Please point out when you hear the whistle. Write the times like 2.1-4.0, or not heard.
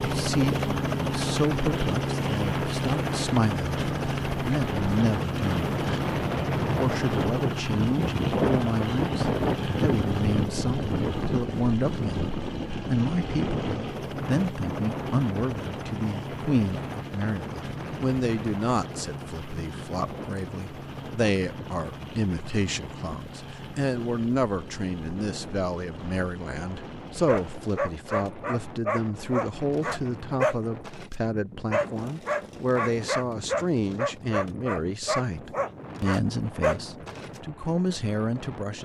not heard.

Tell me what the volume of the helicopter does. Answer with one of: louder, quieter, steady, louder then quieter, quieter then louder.
quieter.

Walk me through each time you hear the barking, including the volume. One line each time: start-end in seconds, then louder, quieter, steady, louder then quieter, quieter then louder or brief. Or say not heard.
27.2-37.4 steady.